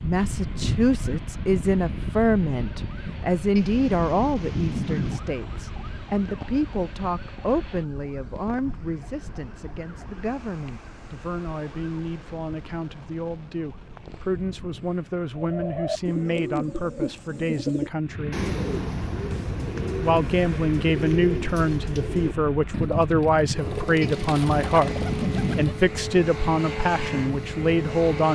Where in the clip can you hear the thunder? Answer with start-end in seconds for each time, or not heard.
3.5-5.2, 24.0-25.6.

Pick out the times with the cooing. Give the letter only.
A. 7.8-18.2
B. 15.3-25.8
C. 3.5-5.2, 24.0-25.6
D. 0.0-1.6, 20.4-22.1
B.